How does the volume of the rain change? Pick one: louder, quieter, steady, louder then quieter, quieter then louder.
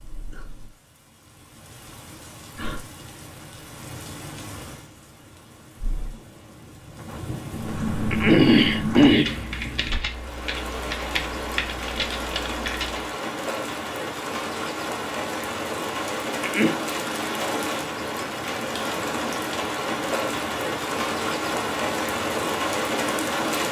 louder.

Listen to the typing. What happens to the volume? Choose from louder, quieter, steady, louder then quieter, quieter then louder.
quieter.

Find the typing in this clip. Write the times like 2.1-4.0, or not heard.
7.5-13.1.